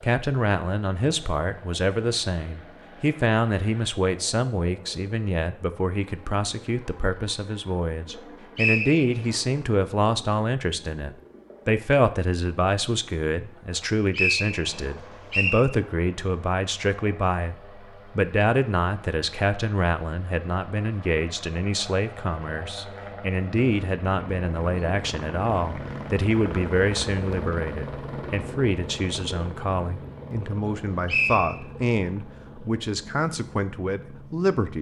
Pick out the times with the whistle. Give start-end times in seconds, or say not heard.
8.2-9.3, 13.7-15.6, 30.6-31.6.